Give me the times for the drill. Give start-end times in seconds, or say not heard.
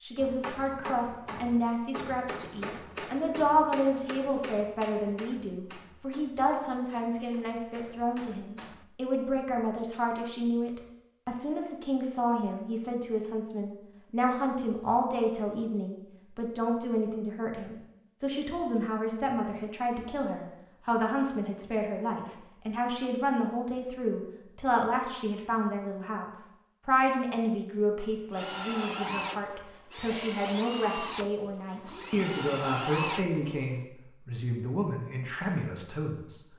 28.3-33.8.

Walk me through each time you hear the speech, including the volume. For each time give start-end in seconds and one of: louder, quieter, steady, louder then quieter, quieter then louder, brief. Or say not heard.
0.0-36.4 steady.